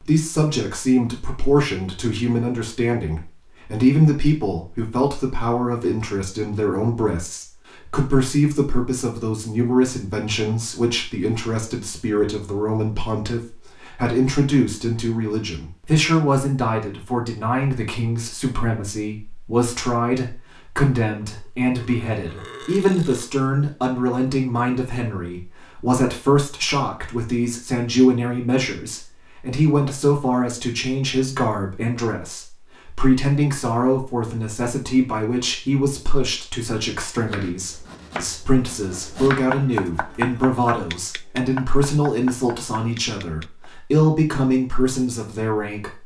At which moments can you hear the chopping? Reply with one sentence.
The chopping can be heard from 37.1 to 43.7 s.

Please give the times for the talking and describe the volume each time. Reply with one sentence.
The talking can be heard from 0.0 to 46.0 s, at a steady volume.